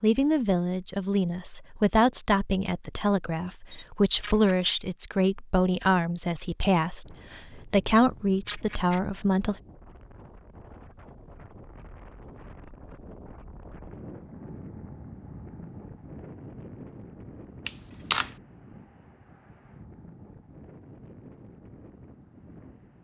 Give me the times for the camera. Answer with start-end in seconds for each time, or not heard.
3.7-4.8, 8.0-9.0, 17.6-18.3.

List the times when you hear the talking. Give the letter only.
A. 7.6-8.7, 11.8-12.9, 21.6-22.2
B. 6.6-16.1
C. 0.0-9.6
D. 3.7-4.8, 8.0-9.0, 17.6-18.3
C.